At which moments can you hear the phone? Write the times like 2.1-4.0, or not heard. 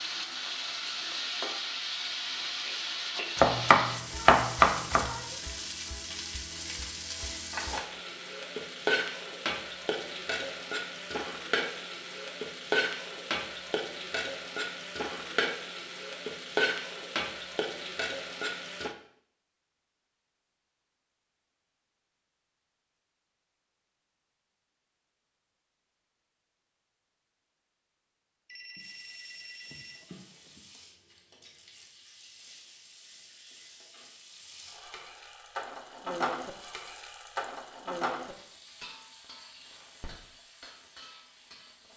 28.4-30.6.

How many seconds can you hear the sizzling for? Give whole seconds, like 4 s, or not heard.
32 s.